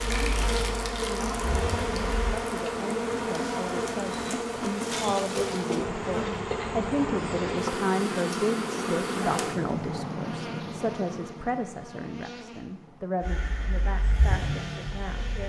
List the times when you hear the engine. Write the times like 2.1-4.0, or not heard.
0.0-2.4, 13.2-15.4.